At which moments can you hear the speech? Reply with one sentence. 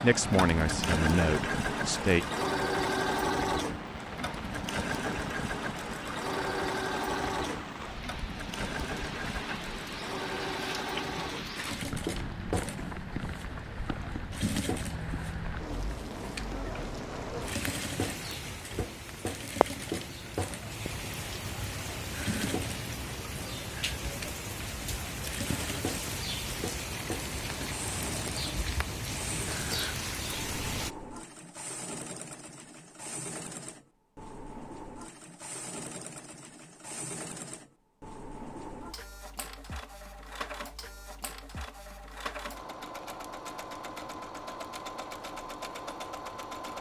You can hear the speech from 0.0 to 2.2 s.